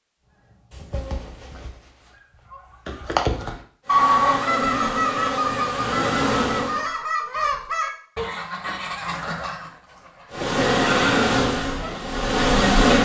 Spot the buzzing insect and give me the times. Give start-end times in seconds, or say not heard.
3.9-6.8, 10.3-12.9.